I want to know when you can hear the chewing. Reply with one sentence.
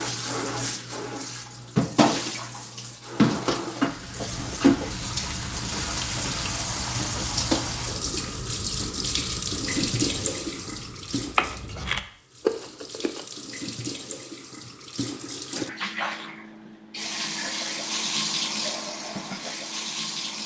The chewing can be heard from 3.9 to 13.2 s.